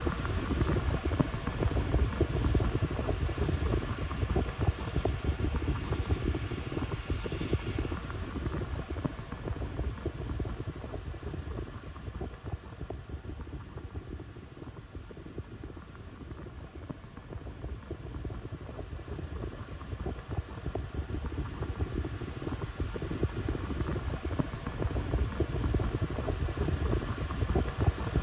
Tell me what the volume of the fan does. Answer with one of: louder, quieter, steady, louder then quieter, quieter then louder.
quieter then louder.